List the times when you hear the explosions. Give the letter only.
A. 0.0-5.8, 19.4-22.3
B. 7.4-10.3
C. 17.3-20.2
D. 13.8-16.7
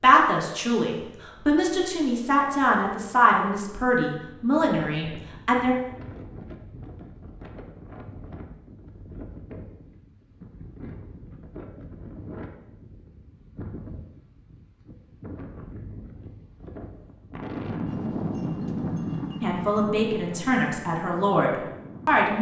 C.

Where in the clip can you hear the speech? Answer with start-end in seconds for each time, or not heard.
0.0-5.8, 19.4-22.3.